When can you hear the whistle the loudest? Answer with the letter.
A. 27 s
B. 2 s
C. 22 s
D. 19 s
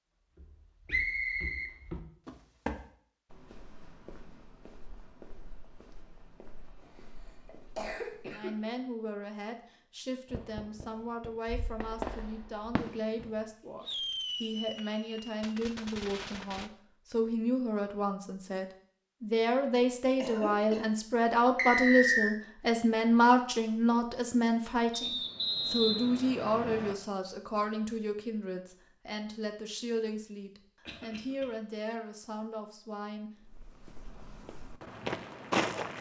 C.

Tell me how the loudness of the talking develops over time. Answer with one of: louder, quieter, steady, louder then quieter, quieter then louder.
louder then quieter.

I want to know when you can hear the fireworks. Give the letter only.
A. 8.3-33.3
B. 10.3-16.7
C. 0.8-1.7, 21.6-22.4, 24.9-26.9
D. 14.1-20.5
B.